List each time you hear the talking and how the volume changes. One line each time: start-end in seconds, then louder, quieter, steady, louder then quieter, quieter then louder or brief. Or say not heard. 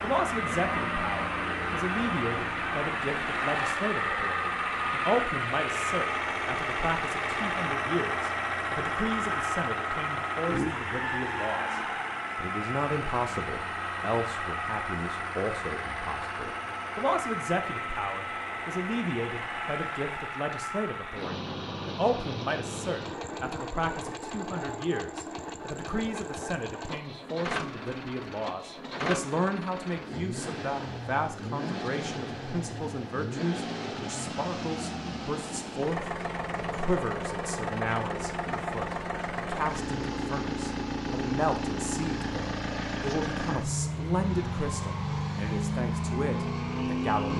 0.0-47.3 steady.